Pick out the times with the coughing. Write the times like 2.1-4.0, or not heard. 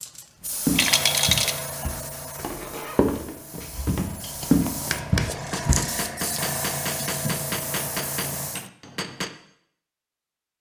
not heard.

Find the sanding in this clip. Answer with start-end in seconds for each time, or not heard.
not heard.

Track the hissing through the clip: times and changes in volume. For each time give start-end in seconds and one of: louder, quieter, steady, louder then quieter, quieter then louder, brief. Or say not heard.
0.0-8.7 quieter then louder.